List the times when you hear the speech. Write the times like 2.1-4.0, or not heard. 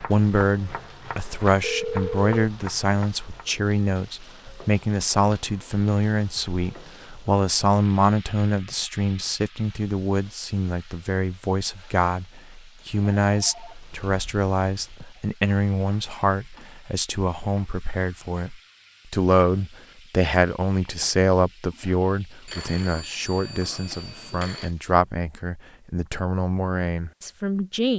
0.0-27.9.